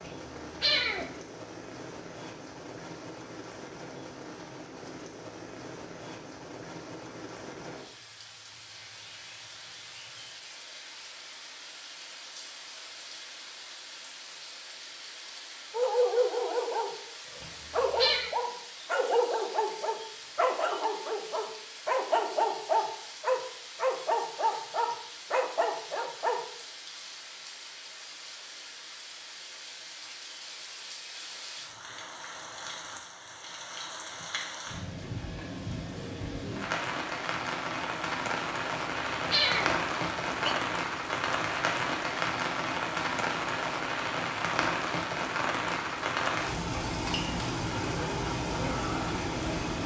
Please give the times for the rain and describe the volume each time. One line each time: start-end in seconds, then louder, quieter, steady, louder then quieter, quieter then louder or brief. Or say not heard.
0.0-49.8 louder.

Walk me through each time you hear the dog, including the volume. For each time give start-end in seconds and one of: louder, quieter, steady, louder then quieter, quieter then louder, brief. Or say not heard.
15.7-26.4 steady.